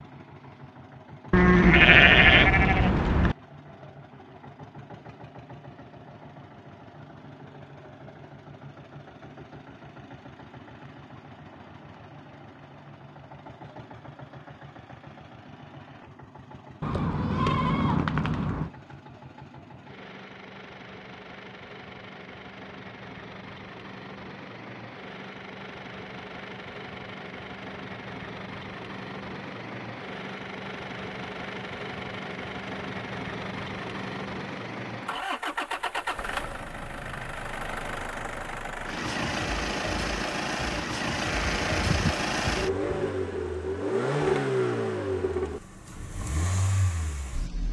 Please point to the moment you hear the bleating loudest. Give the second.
2 s.